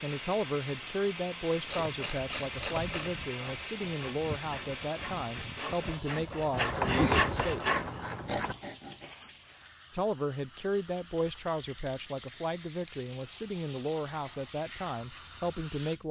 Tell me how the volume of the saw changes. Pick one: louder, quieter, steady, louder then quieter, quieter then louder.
louder.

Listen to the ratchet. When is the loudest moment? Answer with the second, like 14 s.
7 s.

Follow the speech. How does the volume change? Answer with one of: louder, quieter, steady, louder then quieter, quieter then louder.
steady.